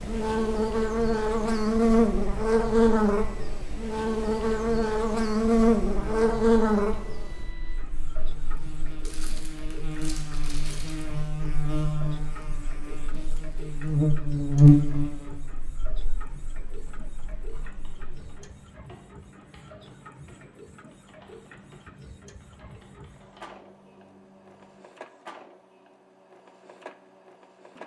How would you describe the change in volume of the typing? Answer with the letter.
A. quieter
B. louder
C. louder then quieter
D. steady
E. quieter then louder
D.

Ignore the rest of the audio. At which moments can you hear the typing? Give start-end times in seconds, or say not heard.
16.7-24.8.